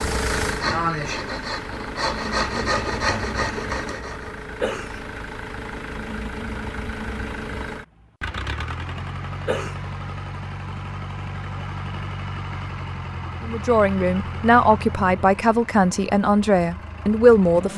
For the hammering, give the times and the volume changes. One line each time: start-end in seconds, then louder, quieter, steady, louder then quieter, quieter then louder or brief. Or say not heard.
not heard.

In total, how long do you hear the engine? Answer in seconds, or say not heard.
18 s.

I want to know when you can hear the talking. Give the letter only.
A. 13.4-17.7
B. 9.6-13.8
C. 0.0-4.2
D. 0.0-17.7
A.